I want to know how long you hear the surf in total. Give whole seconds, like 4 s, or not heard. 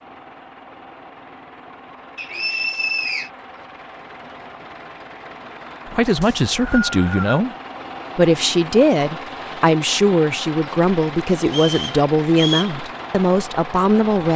not heard.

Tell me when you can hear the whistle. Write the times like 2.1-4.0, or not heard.
2.1-3.3, 6.2-7.3, 11.4-12.8.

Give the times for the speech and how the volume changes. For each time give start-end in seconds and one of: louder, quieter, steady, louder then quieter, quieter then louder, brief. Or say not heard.
5.9-7.5 brief
8.2-14.3 steady.